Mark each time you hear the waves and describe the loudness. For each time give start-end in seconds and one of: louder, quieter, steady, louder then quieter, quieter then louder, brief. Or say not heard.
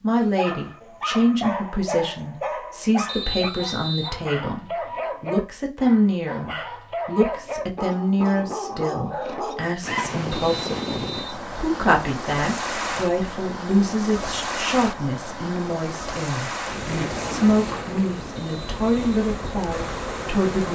9.8-20.7 steady.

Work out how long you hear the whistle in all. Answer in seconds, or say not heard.
3 s.